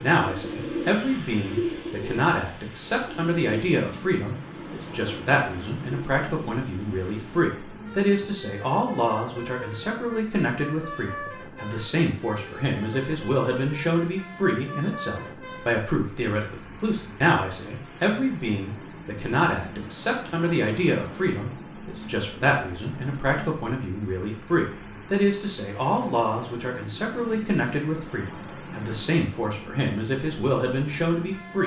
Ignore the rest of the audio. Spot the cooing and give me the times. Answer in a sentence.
The cooing can be heard from 0.0 to 7.5 s.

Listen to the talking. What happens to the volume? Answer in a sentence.
The volume of the talking stays about the same.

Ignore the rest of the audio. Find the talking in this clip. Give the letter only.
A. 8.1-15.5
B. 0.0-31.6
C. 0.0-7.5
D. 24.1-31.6
B.